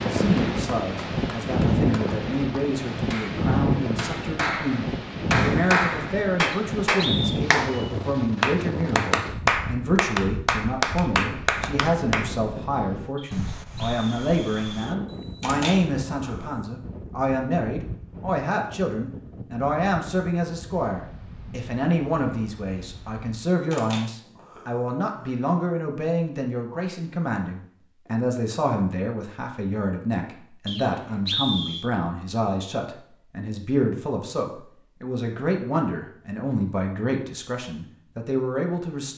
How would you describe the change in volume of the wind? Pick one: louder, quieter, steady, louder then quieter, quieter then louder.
quieter.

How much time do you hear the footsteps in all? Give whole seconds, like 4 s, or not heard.
not heard.